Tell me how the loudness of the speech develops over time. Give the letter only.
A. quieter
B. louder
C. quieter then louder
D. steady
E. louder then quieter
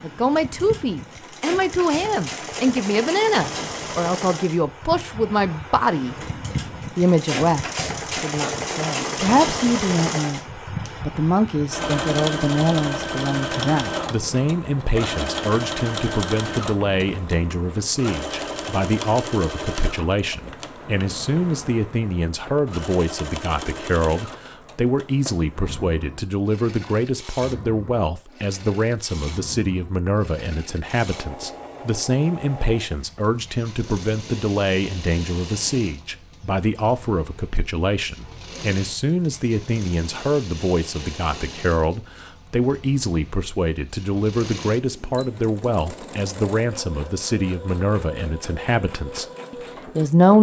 D.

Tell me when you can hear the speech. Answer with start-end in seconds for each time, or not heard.
0.0-6.2, 7.0-50.3.